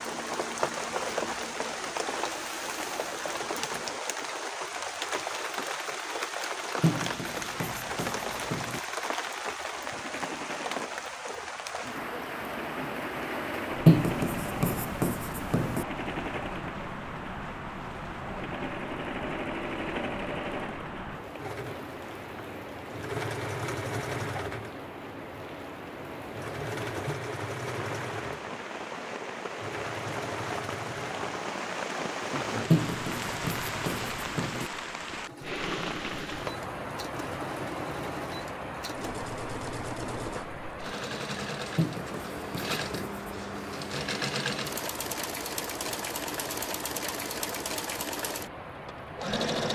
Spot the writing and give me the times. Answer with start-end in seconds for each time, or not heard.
6.8-8.8, 13.8-15.8, 32.7-34.7, 41.8-43.4.